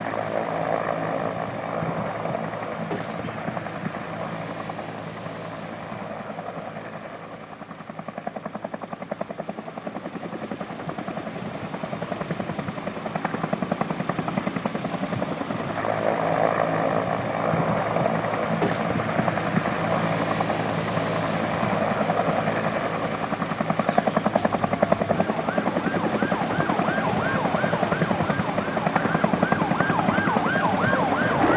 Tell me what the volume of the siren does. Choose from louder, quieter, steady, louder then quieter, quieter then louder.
louder.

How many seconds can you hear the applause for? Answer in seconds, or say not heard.
not heard.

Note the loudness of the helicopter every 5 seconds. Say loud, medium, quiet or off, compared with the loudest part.
medium, medium, medium, loud, loud, loud, loud.